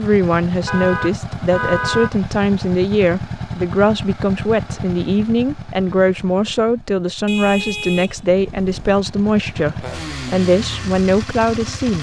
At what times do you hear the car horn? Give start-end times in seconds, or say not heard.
0.7-2.1, 7.2-9.0.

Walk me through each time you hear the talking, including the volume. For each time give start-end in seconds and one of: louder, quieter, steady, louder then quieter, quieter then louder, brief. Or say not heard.
0.0-11.9 steady.